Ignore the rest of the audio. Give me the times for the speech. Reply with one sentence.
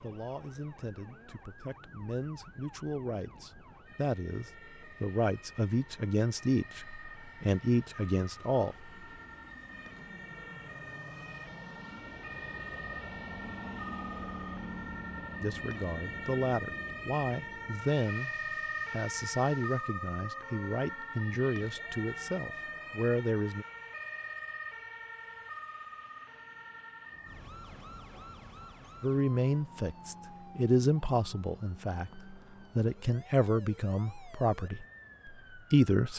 You can hear the speech from 0.0 to 8.9 s, from 15.4 to 23.6 s and from 29.0 to 36.1 s.